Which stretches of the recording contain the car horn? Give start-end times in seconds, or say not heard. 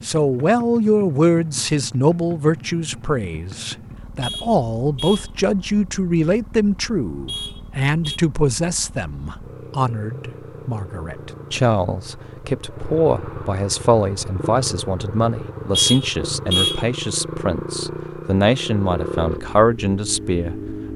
4.2-5.3, 7.2-8.2, 15.7-16.9.